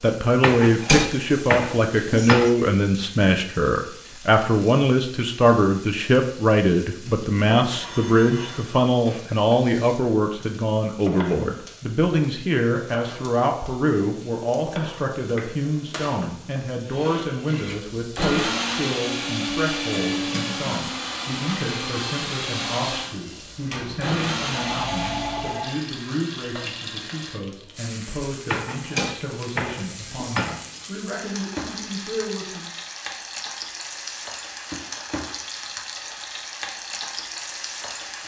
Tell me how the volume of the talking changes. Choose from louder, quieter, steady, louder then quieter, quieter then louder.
quieter.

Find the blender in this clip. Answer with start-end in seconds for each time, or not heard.
16.9-25.6.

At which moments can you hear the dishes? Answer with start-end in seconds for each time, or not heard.
0.4-2.5, 28.5-30.9.